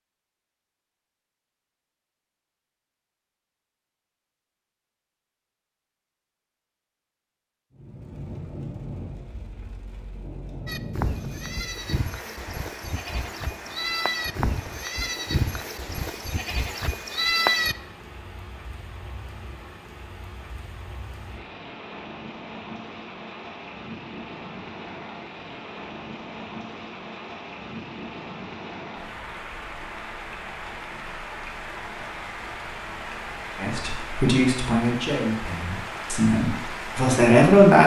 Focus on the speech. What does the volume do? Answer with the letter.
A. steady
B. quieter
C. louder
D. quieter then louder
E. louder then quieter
D.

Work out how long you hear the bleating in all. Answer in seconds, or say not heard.
7 s.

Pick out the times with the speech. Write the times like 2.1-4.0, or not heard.
33.6-37.8.